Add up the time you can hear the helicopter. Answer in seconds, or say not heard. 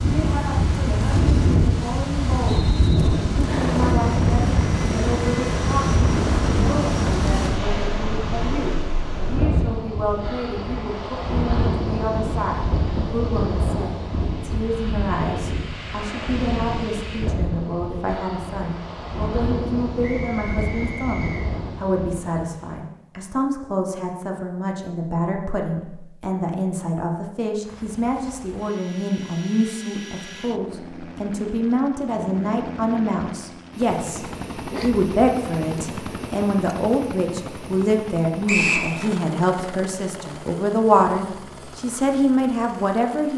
20 s.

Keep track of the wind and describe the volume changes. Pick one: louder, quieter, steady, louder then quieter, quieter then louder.
quieter.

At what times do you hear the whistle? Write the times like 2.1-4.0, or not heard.
2.5-3.1, 20.0-21.4, 38.5-38.9.